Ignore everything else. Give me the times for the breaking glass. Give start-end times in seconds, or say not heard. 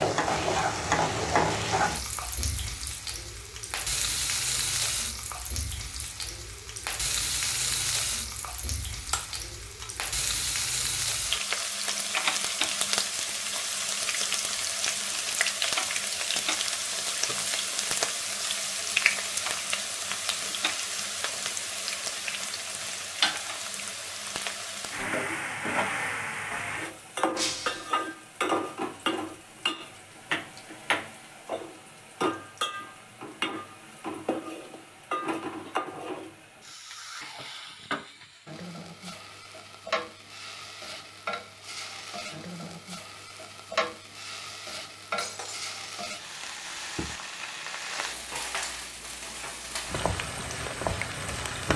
9.1-9.9, 27.4-27.9, 45.1-45.6.